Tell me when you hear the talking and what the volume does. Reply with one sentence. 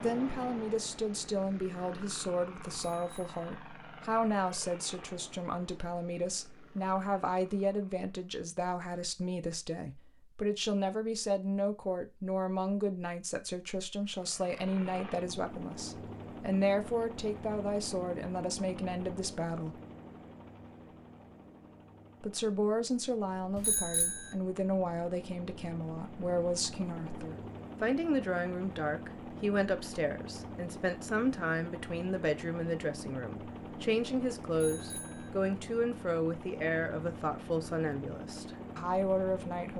The talking can be heard from 0.0 to 19.8 s, at a steady volume; and from 22.2 to 39.7 s, at a steady volume.